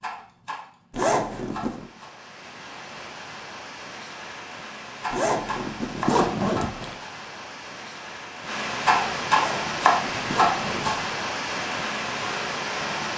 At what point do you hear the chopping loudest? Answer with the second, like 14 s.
10 s.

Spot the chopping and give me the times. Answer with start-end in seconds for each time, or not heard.
0.0-2.1, 5.0-7.1, 8.8-10.9.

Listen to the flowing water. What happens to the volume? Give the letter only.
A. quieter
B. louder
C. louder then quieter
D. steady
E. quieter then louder
B.